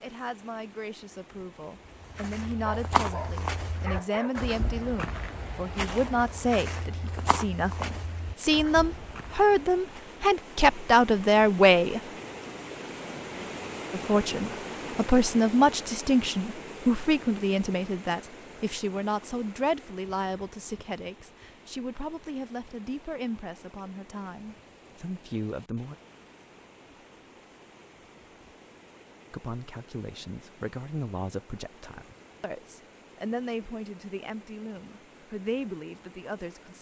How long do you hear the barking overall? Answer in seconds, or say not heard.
2 s.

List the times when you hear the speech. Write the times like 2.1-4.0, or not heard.
0.0-12.0, 13.9-25.9, 29.3-36.7.